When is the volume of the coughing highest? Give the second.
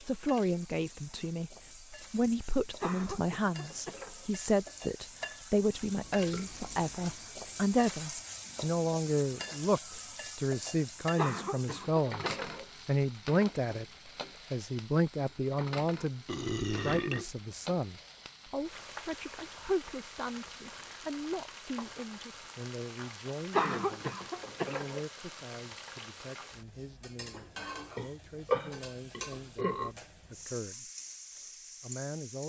24 s.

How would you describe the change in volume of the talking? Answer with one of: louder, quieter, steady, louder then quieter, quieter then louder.
quieter.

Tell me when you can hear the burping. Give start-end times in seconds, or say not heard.
6.0-7.2, 16.2-17.4, 27.9-29.9.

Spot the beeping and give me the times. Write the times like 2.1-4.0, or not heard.
not heard.